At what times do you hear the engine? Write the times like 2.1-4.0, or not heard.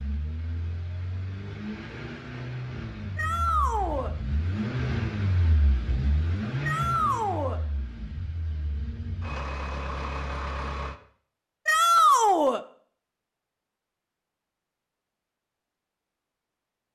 0.0-10.9.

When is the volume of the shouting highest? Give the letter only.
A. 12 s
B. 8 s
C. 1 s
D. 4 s
A.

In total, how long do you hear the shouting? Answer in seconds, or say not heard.
3 s.